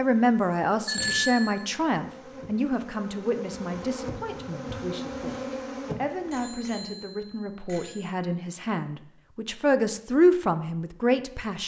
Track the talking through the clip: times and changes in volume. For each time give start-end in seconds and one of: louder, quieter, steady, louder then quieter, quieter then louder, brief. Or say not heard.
0.0-11.6 quieter then louder.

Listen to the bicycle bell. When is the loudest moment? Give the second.
1 s.